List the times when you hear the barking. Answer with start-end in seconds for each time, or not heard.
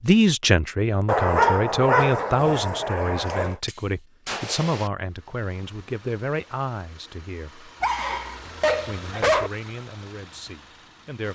1.1-3.5, 7.8-9.5.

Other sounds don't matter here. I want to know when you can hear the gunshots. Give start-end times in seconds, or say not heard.
3.1-4.9.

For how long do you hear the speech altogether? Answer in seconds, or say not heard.
10 s.